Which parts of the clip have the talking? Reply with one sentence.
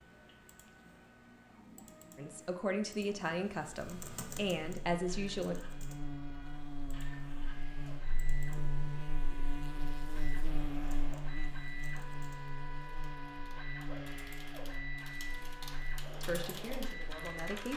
You can hear the talking from 2.1 to 5.5 s and from 16.2 to 17.7 s.